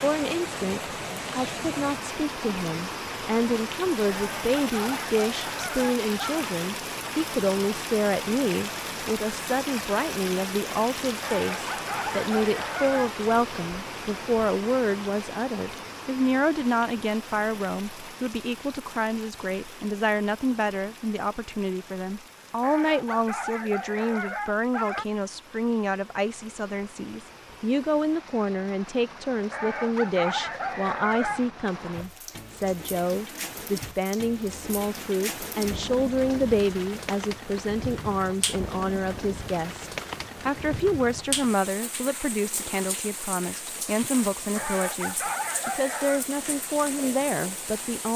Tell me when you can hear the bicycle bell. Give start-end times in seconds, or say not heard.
not heard.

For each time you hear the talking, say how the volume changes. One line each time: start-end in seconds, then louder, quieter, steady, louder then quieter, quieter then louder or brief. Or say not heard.
0.0-48.1 steady.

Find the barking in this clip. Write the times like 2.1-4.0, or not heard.
4.0-6.5, 11.2-13.2, 22.6-25.1, 29.5-31.4, 44.5-46.2.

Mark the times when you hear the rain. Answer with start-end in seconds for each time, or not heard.
0.0-48.1.